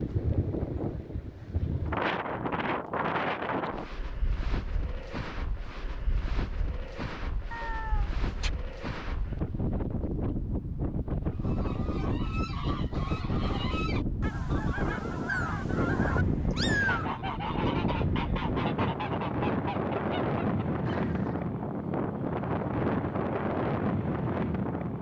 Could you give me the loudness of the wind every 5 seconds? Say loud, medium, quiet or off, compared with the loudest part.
loud, medium, loud, loud, loud.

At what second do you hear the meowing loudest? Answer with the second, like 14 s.
17 s.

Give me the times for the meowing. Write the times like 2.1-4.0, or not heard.
7.5-8.5, 15.2-17.1.